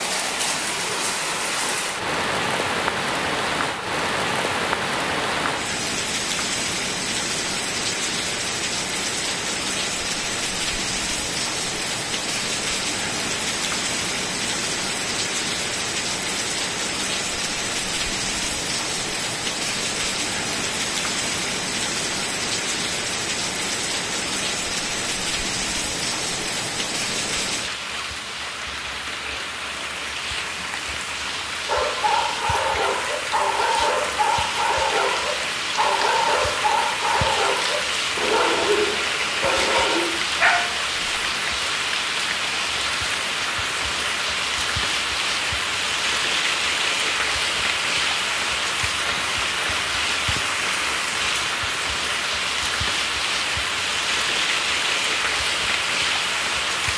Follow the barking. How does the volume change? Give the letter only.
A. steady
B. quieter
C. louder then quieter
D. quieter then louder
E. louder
A.